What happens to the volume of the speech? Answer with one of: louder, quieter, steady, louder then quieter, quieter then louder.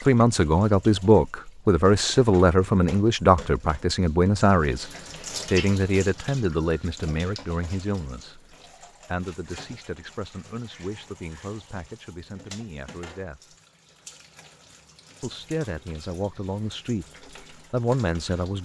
quieter then louder.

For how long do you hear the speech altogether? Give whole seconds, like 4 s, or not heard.
17 s.